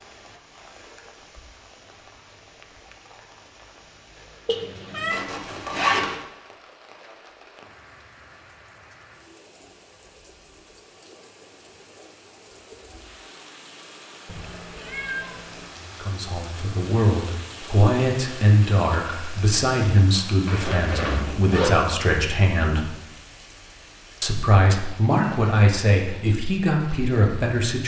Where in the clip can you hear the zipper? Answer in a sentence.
You can hear the zipper from 5.1 to 6.2 s and from 20.4 to 21.7 s.